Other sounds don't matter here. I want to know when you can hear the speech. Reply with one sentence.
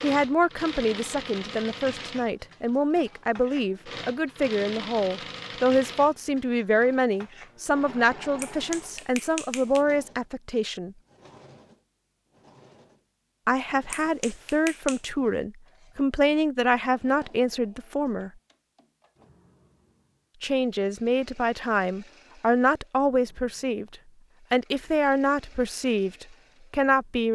You can hear the speech from 0.0 to 10.9 s, from 13.4 to 18.3 s and from 20.4 to 27.3 s.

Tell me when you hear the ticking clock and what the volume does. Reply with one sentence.
The ticking clock can't be heard in this clip.